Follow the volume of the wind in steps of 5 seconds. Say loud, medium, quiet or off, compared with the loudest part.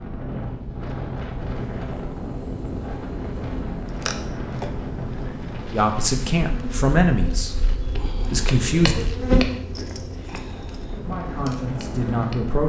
loud, medium, loud.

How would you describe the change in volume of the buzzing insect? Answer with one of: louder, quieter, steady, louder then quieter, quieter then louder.
louder then quieter.